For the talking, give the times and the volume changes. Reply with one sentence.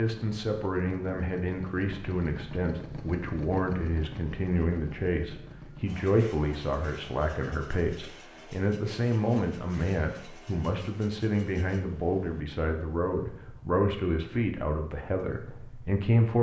The talking can be heard from 0.0 to 16.3 s, at a steady volume.